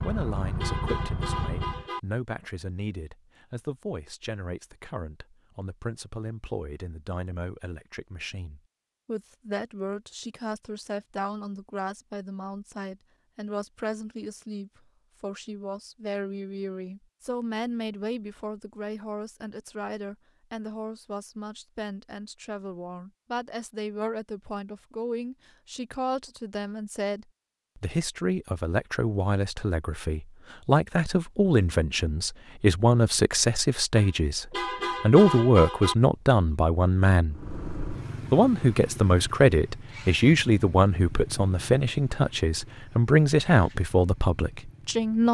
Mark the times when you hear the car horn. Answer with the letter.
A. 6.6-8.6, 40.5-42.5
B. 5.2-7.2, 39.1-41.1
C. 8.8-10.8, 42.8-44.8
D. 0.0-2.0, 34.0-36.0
D.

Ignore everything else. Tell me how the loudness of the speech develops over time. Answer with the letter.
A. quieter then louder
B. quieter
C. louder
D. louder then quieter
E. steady
C.